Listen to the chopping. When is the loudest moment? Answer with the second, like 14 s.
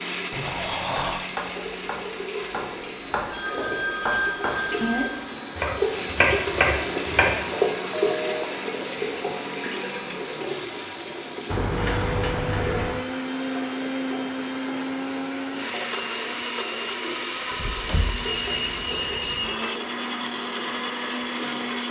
6 s.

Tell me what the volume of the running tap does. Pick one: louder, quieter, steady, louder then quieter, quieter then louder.
louder then quieter.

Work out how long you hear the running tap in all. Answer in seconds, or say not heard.
22 s.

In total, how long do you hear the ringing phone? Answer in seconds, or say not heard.
4 s.